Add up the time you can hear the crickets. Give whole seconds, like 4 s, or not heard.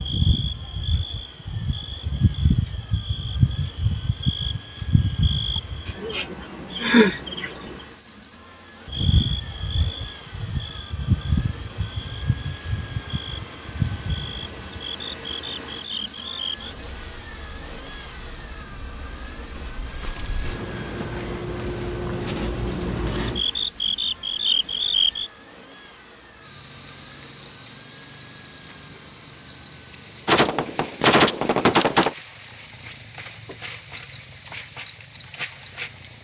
36 s.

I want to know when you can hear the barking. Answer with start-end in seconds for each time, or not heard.
not heard.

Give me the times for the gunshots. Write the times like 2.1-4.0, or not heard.
30.2-32.1.